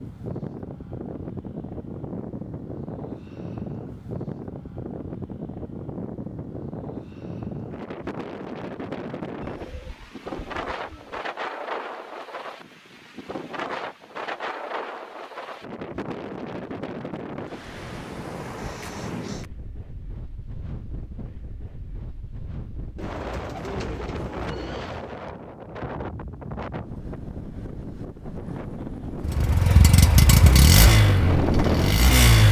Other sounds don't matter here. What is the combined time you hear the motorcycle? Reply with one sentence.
The motorcycle can be heard for 3 seconds in total.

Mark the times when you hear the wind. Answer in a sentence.
You can hear the wind from 0.0 to 32.2 s.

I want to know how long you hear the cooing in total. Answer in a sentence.
You can hear the cooing for 4 seconds altogether.